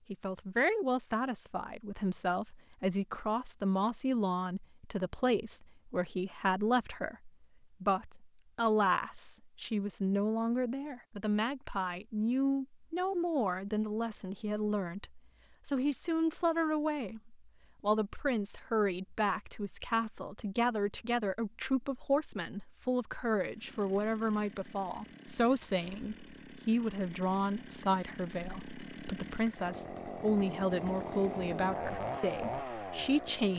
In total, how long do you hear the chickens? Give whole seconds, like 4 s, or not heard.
not heard.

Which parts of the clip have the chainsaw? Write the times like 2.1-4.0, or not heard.
23.4-33.5.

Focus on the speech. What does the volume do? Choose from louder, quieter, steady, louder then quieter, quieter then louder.
steady.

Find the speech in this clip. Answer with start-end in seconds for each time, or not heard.
0.1-33.5.